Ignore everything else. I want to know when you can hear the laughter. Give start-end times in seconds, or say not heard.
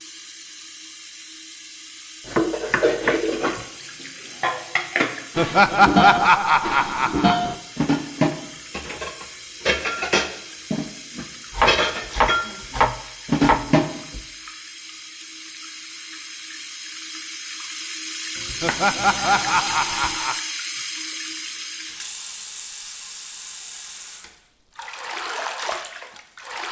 5.3-7.3, 18.6-20.4.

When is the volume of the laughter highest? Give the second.
6 s.